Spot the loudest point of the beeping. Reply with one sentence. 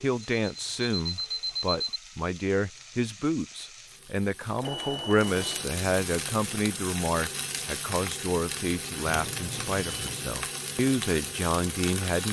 The volume of the beeping peaks at 2 seconds.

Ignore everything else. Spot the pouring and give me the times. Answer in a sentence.
You can't hear the pouring here.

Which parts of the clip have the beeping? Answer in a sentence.
The beeping can be heard from 0.4 to 2.0 s, from 4.6 to 5.7 s and from 9.1 to 10.3 s.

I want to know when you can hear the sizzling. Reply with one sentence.
The sizzling can be heard from 0.0 to 12.2 s.